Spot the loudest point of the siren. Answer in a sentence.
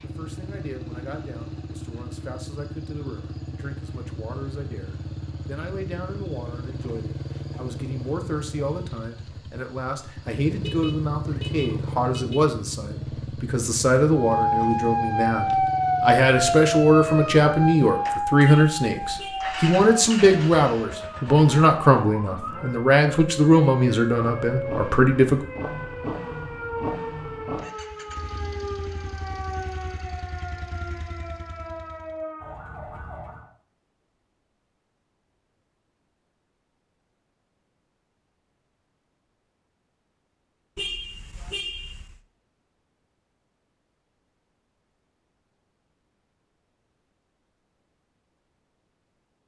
The loudest moment of the siren is at 16 seconds.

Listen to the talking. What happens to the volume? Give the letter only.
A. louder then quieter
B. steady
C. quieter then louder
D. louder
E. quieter
D.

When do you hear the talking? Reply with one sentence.
The talking can be heard from 0.0 to 25.4 s.